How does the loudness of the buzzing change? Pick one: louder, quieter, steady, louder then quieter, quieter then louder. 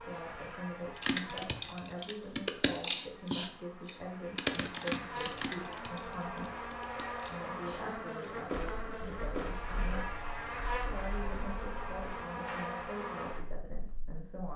louder.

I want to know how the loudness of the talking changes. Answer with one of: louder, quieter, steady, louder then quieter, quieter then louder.
steady.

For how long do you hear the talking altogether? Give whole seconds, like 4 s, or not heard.
14 s.